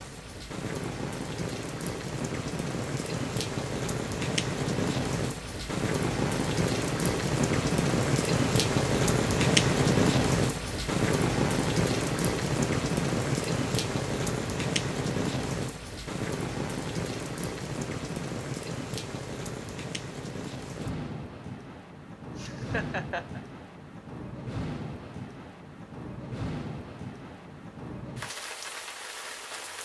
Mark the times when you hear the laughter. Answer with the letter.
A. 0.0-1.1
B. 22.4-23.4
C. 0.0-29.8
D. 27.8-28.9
B.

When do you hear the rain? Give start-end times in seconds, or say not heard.
0.0-29.8.